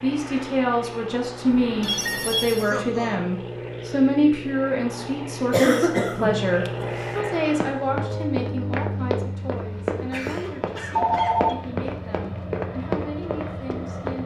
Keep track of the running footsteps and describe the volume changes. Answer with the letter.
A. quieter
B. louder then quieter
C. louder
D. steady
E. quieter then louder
D.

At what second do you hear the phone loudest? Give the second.
11 s.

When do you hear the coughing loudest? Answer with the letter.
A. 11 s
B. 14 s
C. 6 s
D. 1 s
C.